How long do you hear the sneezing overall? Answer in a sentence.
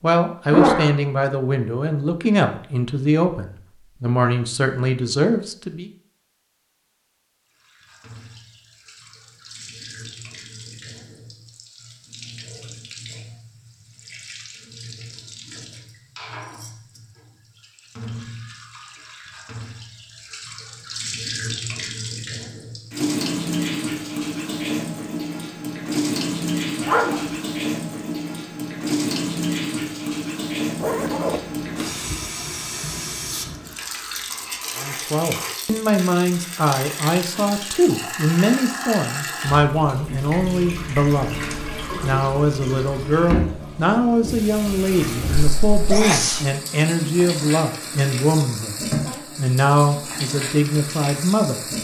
The sneezing can be heard for 2 seconds in total.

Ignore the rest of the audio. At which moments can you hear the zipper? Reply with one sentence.
You can hear the zipper from 30.8 to 32.3 s.